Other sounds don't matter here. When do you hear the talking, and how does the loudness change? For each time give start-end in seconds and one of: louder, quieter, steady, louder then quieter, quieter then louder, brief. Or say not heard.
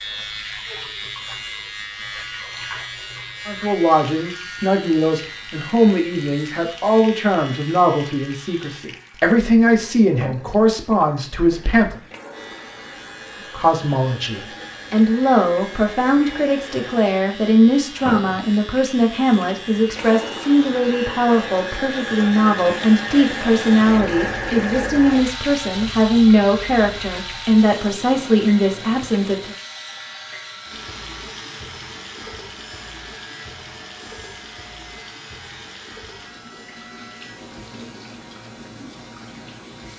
3.5-12.0 steady
13.5-29.6 steady.